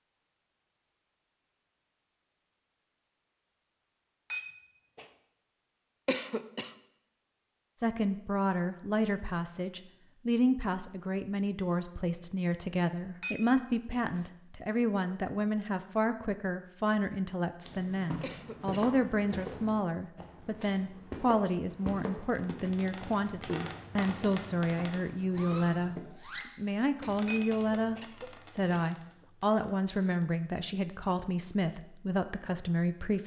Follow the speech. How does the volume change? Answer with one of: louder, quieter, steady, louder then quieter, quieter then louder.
steady.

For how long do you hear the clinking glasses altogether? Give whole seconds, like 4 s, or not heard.
3 s.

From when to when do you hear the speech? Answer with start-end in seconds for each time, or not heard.
7.8-25.9, 26.6-33.2.